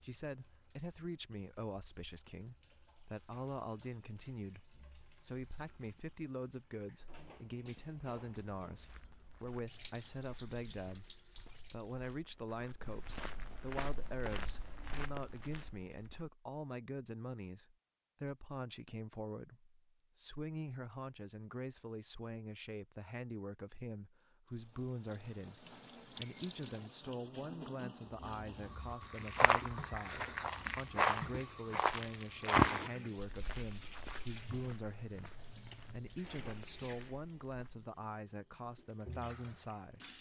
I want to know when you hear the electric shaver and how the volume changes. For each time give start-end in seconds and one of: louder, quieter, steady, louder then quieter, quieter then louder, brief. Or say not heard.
not heard.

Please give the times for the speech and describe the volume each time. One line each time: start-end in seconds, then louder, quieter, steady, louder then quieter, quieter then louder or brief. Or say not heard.
0.0-40.1 steady.